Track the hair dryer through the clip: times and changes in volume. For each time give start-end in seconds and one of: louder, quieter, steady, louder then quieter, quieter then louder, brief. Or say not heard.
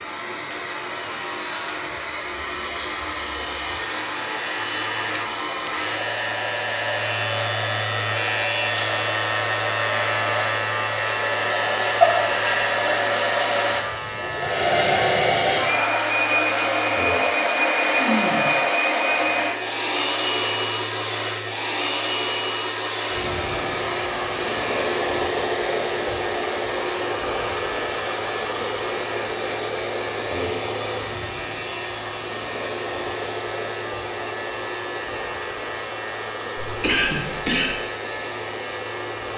0.0-39.3 louder then quieter.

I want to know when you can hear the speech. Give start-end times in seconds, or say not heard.
not heard.